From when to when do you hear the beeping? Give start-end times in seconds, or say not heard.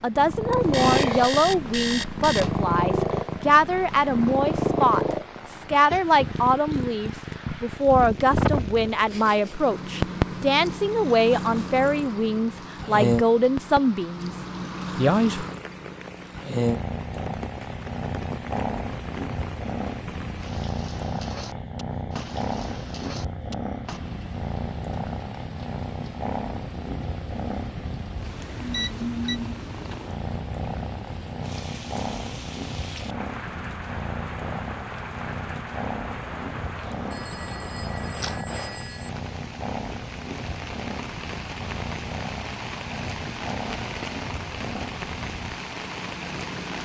0.5-2.5, 28.7-29.4, 37.1-39.1.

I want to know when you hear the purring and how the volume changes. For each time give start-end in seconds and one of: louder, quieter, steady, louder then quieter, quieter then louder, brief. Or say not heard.
0.1-46.8 quieter.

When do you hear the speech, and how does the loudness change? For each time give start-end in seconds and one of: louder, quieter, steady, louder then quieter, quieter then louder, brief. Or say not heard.
0.0-14.3 steady
14.9-15.4 brief.